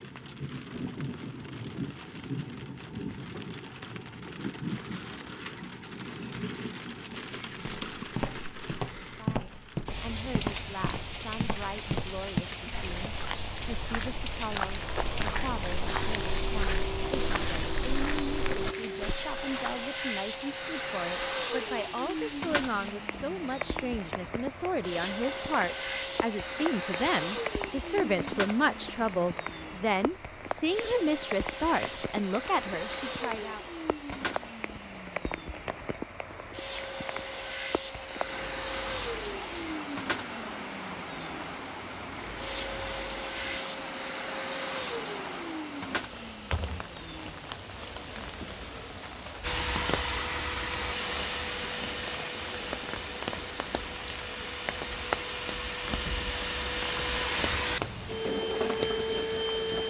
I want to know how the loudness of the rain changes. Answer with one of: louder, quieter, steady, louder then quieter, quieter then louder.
steady.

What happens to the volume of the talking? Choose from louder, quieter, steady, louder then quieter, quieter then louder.
louder.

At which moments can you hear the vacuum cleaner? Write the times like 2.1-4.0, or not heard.
15.8-48.0, 49.4-59.8.